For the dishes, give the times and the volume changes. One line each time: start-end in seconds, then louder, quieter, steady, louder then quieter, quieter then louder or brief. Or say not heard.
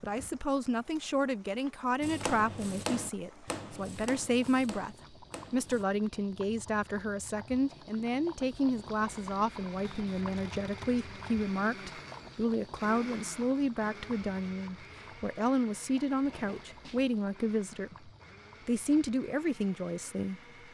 not heard.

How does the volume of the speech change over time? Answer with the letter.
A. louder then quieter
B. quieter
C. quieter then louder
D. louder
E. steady
E.